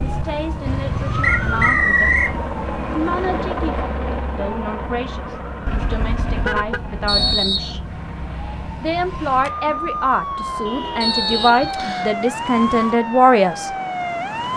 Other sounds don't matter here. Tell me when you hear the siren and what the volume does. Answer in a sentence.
The siren can be heard from 0.0 to 14.5 s, getting quieter then louder.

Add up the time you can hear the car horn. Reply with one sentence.
You can hear the car horn for 4 seconds altogether.